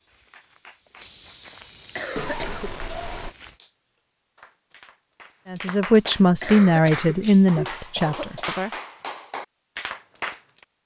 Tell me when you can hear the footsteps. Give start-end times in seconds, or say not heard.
0.0-3.6.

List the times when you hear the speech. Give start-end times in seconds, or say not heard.
5.5-8.7.